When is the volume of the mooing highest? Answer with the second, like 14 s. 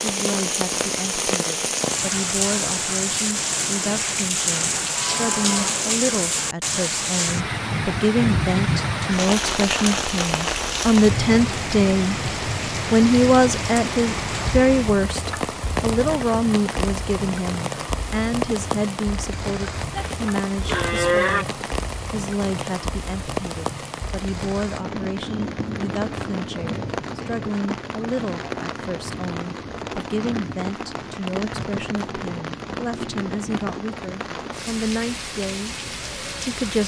21 s.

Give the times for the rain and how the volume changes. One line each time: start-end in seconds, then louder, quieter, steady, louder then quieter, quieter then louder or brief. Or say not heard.
0.0-36.8 quieter.